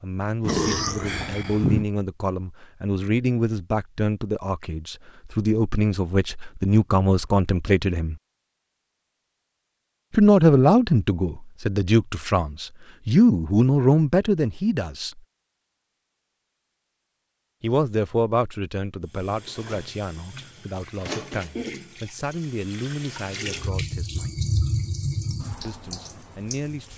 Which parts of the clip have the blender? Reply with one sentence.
You can't hear the blender here.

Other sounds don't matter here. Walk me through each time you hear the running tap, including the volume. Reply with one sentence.
The running tap can be heard from 19.1 to 26.9 s, getting louder then quieter.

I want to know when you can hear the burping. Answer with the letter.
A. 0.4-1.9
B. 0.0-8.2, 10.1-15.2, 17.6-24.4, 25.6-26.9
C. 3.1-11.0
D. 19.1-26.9
A.